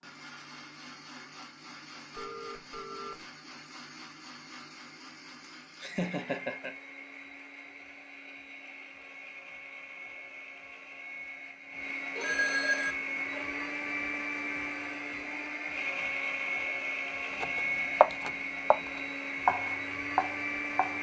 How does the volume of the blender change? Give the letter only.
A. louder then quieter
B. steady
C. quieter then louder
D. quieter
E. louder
E.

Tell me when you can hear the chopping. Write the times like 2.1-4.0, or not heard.
17.4-20.9.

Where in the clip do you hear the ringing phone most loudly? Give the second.
13 s.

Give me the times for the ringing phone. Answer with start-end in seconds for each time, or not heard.
2.1-3.2, 12.2-13.7.